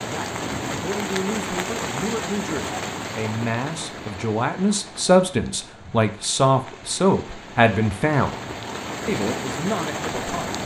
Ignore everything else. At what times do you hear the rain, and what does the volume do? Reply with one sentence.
You can hear the rain from 0.0 to 10.6 s, getting quieter then louder.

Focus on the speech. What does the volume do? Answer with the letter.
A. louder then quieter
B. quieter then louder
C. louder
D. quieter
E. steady
A.